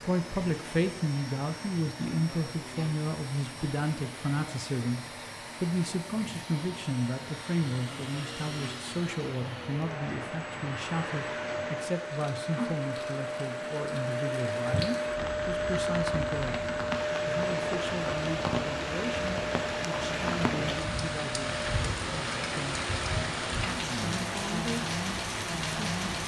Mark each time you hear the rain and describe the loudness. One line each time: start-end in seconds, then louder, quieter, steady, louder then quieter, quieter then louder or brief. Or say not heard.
0.0-26.2 louder.